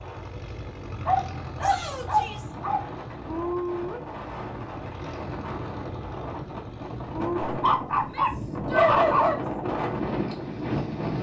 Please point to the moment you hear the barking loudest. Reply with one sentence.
The volume of the barking peaks at 9 seconds.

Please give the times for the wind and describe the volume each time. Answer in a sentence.
The wind can be heard from 0.0 to 11.1 s, getting louder.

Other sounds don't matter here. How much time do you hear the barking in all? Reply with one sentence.
The barking can be heard for 4 seconds in total.